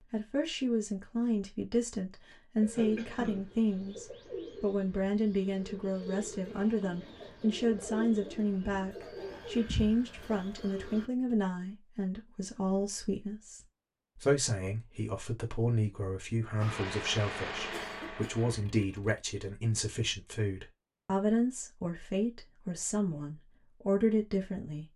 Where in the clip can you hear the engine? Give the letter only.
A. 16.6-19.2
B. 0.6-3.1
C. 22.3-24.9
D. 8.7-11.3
A.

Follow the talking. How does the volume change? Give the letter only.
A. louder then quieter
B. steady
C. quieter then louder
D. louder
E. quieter
B.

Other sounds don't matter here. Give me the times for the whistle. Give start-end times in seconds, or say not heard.
not heard.